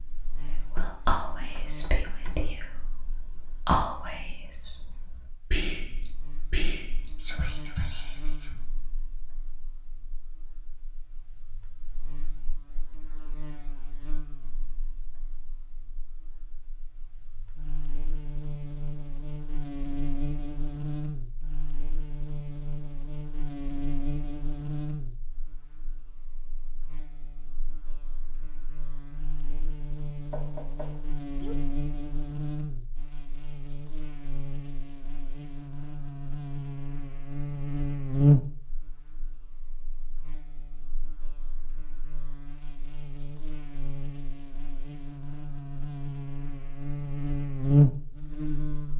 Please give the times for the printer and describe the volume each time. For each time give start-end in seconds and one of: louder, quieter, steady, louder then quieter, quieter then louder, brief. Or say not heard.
not heard.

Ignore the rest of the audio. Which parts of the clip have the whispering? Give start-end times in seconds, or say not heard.
0.6-8.6.